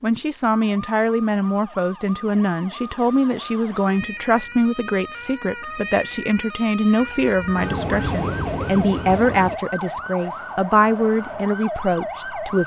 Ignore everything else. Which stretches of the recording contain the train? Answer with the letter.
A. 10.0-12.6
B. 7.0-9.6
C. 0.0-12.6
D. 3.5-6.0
B.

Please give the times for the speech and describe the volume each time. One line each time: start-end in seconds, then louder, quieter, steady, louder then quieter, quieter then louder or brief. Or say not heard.
0.0-12.6 steady.